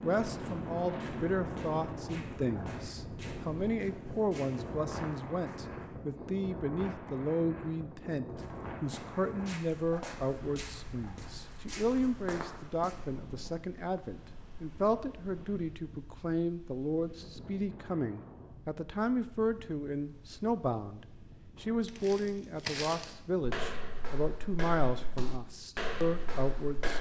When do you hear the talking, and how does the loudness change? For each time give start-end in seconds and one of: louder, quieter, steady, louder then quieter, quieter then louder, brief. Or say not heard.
0.0-26.9 steady.